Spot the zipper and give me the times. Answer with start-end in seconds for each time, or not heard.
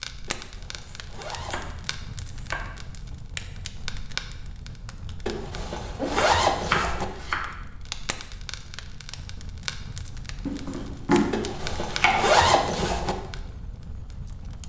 0.2-1.6, 5.2-7.0, 11.3-13.2.